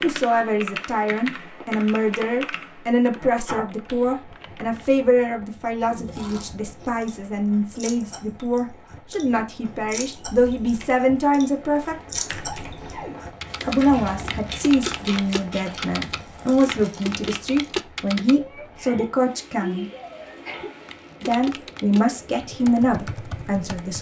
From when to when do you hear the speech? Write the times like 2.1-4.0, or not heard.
0.0-11.9, 13.6-19.9, 21.2-23.9.